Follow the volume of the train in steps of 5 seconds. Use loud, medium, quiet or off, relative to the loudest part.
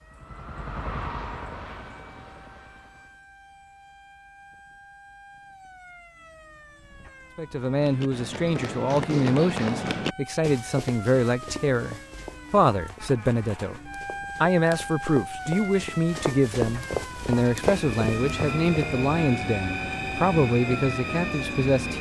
medium, off, off, loud, loud.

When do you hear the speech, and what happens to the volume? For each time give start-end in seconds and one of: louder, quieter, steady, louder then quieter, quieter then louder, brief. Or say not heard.
7.3-21.9 steady.